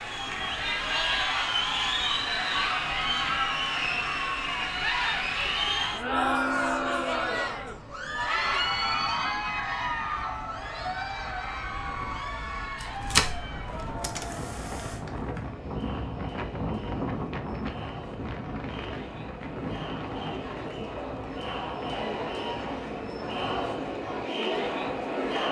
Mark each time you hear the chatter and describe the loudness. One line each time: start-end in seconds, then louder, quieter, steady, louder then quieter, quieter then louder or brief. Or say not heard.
0.0-25.4 quieter then louder.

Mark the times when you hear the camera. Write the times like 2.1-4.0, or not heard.
12.8-15.0.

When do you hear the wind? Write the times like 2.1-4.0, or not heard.
0.0-25.4.